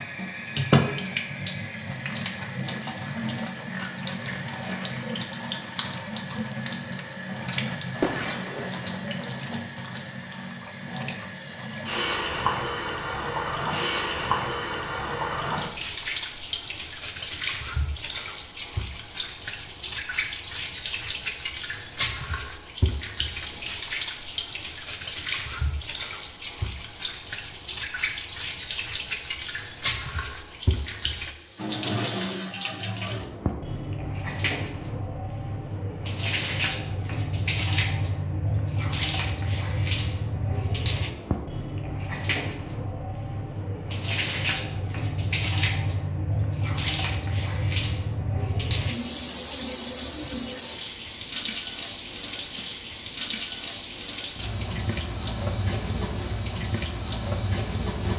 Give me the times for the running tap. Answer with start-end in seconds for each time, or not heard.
0.0-58.1.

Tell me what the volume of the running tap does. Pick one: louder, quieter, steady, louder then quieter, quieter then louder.
steady.